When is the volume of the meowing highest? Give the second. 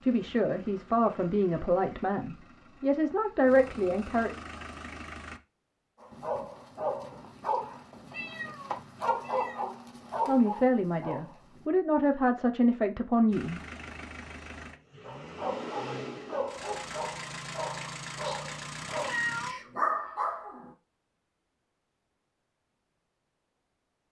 19 s.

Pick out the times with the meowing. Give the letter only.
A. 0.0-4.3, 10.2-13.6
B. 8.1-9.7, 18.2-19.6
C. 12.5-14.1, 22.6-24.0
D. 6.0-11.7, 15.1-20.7
B.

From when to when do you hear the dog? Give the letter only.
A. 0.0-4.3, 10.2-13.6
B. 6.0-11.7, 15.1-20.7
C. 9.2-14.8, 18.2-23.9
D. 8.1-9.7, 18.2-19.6
B.